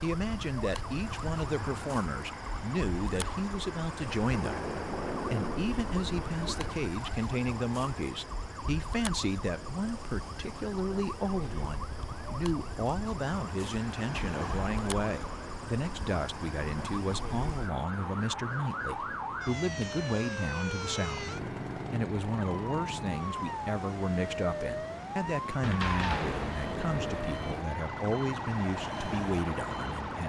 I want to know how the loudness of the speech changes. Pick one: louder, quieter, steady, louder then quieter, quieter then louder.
steady.